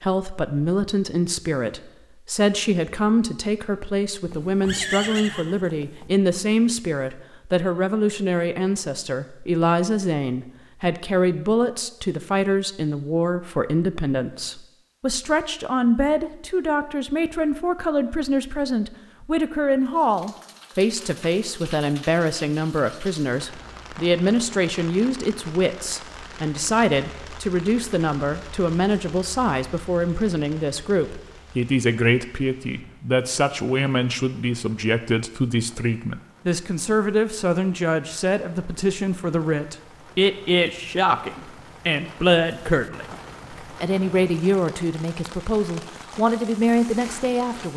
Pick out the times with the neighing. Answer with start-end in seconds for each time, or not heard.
4.2-6.1.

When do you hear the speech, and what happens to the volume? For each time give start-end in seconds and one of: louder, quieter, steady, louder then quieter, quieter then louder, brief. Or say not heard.
0.0-47.7 steady.